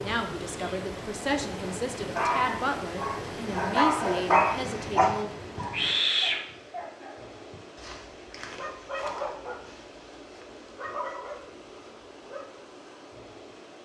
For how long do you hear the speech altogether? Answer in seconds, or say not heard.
5 s.